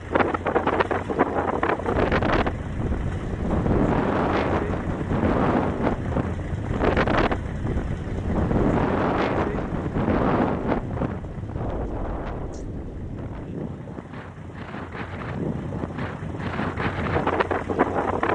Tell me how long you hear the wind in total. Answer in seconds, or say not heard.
18 s.